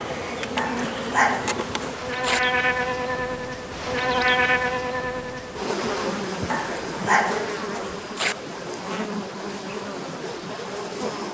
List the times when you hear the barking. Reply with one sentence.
You can hear the barking from 0.6 to 2.4 s and from 6.5 to 8.3 s.